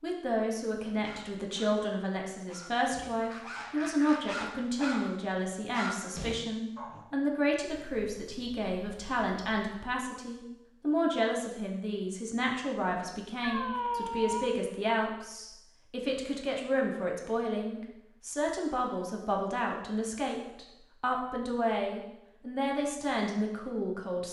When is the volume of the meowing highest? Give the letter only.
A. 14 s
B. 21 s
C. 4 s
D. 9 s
A.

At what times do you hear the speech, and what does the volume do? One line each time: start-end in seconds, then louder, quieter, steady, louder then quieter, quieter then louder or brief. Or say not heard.
0.0-24.2 steady.